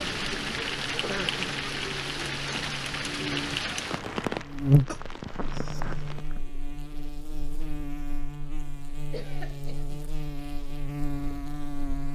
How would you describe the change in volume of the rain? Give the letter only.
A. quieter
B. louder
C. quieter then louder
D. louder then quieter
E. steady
A.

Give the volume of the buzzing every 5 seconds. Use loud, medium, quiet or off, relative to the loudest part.
loud, medium, medium.